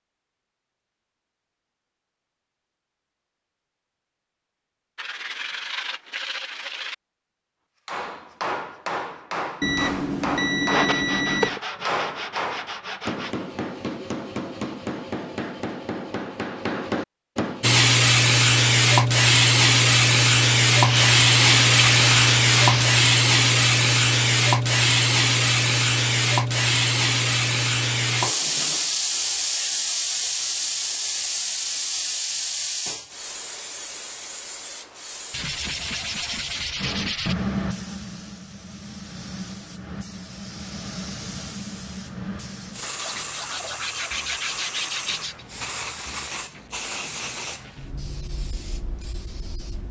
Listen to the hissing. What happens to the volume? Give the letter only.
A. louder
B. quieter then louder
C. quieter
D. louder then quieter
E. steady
C.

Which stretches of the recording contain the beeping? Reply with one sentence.
You can hear the beeping from 9.6 to 11.6 s.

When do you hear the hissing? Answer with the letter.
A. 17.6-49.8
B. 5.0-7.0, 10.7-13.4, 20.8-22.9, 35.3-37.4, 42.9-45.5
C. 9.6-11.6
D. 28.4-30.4
A.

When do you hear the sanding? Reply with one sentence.
The sanding can be heard from 5.0 to 7.0 s, from 10.7 to 13.4 s, from 20.8 to 22.9 s, from 35.3 to 37.4 s and from 42.9 to 45.5 s.